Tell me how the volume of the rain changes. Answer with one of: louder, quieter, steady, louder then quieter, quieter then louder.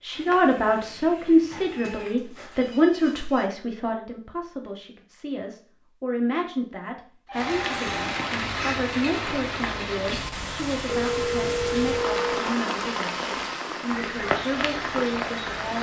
steady.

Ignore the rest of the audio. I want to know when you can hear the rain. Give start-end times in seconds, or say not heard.
7.3-15.7.